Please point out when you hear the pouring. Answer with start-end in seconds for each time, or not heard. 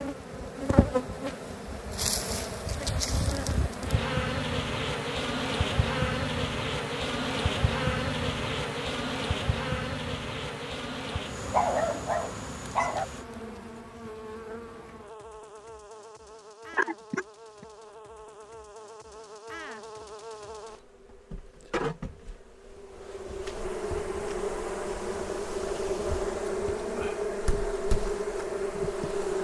not heard.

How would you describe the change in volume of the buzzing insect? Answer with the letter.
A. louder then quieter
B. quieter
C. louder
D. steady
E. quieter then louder
E.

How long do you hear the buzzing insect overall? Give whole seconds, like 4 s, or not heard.
29 s.